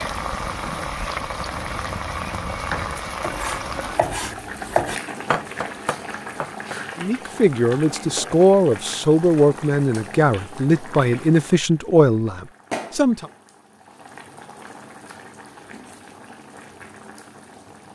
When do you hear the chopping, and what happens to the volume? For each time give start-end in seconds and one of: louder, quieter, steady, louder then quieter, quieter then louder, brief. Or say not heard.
1.6-6.8 louder then quieter.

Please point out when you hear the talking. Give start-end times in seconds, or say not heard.
7.0-13.2.